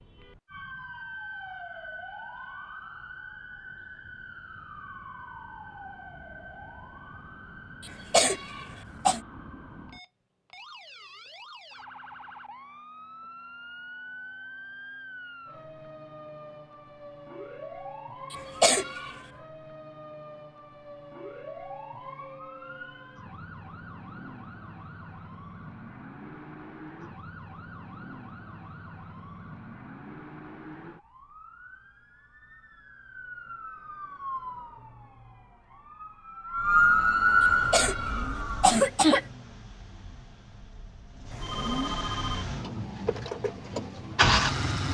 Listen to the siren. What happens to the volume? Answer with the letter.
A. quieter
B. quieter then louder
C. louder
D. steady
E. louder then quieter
C.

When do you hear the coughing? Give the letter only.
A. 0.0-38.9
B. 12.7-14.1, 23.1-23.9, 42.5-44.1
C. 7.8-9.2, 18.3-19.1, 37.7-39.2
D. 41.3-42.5
C.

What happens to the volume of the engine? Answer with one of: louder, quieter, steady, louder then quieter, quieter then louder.
quieter then louder.